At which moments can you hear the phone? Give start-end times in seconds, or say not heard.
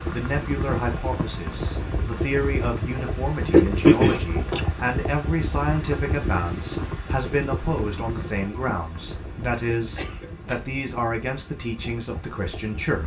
not heard.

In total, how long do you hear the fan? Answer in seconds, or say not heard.
13 s.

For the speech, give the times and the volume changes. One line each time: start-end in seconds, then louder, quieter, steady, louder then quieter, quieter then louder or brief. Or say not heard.
0.1-13.0 steady.